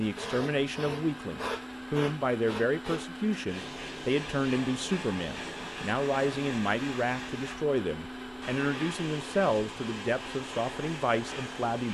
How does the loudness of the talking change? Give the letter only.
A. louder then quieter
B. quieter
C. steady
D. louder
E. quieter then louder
C.